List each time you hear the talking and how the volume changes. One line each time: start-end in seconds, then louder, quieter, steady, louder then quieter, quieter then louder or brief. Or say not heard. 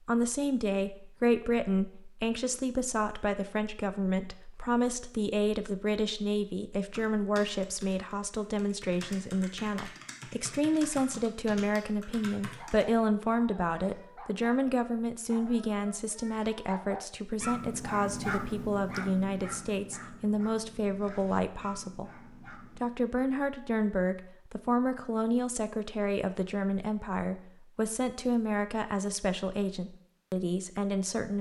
0.0-31.3 steady.